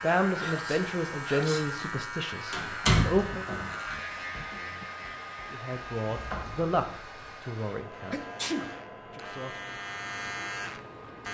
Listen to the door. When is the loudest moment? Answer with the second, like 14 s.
3 s.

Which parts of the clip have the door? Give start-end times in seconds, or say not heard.
2.5-3.8, 6.0-7.3.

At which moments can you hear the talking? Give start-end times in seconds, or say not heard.
0.0-3.5, 5.5-8.2, 9.1-9.8.